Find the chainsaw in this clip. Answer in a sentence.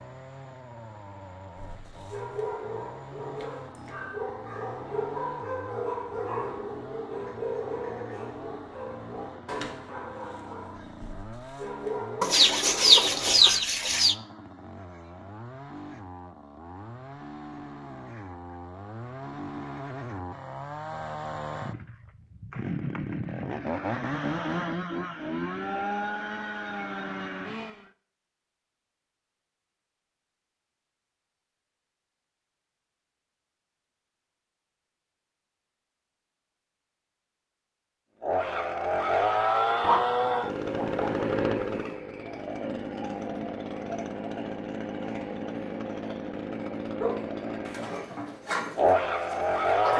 The chainsaw can be heard from 0.0 to 27.9 s and from 38.2 to 49.9 s.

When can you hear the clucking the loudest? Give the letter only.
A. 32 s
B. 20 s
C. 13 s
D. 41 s
C.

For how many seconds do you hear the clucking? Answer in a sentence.
The clucking can be heard for 4 seconds in total.